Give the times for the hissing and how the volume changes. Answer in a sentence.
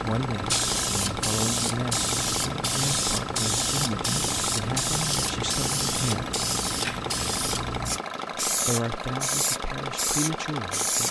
The hissing can be heard from 0.0 to 11.0 s, at a steady volume.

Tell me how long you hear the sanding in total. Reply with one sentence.
The sanding can't be heard in this clip.